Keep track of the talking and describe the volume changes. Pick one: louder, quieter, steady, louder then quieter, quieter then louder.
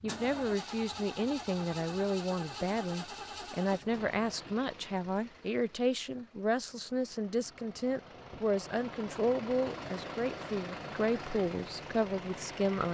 steady.